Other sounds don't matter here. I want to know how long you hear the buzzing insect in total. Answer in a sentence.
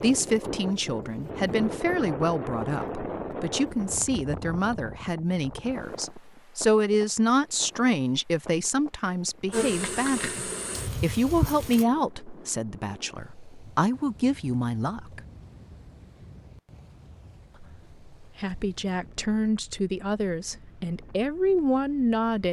The buzzing insect can be heard for 2 seconds in total.